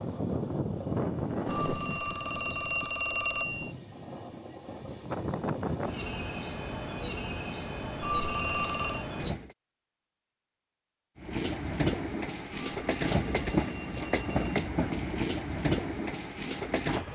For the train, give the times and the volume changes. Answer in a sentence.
You can hear the train from 0.0 to 9.6 s, getting quieter then louder; and from 11.2 to 17.0 s, at a steady volume.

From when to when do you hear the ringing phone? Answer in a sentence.
The ringing phone can be heard from 1.4 to 3.7 s, from 8.0 to 9.1 s and from 12.7 to 14.7 s.